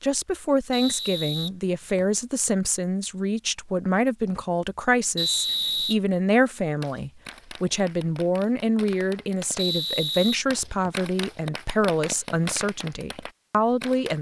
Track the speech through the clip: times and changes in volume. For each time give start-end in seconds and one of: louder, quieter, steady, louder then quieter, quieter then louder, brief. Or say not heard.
0.0-14.1 steady.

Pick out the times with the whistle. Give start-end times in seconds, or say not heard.
0.7-2.2, 5.2-6.0, 9.6-11.1.